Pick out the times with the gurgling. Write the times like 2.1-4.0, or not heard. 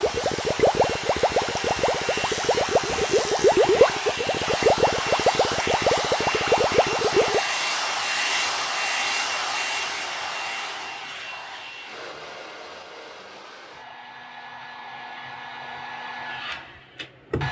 0.0-7.4.